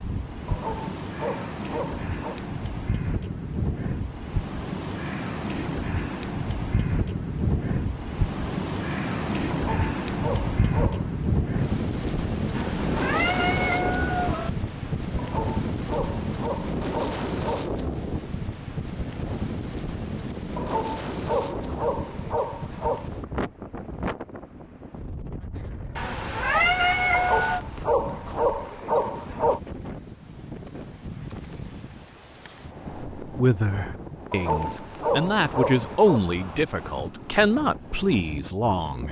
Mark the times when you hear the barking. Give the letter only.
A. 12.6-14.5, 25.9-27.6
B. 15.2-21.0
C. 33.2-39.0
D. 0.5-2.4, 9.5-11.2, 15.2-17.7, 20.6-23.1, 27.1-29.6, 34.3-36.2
D.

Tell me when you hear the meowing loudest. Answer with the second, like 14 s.
27 s.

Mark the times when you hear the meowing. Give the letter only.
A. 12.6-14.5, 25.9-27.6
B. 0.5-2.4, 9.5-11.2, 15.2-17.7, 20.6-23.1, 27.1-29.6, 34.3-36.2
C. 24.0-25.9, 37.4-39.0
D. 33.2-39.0
A.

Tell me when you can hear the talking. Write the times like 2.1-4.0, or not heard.
33.2-39.0.